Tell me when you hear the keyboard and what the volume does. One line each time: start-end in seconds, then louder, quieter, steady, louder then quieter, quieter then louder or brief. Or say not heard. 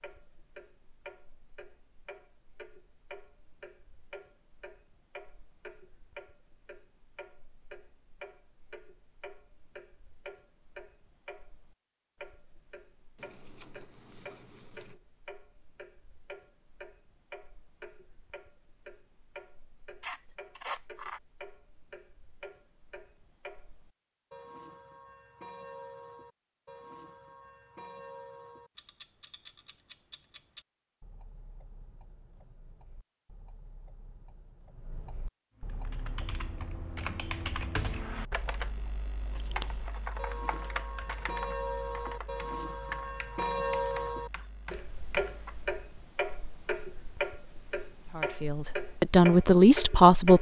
35.6-45.8 quieter.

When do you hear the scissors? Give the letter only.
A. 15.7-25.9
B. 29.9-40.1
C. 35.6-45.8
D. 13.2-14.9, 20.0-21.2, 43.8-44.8
D.